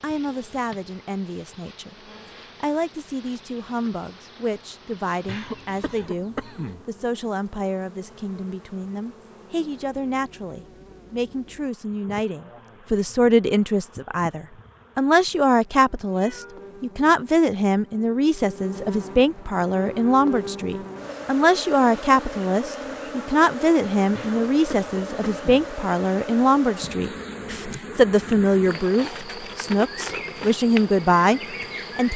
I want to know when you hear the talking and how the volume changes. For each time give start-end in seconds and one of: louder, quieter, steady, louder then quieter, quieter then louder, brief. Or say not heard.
0.0-1.9 brief
2.6-32.1 louder.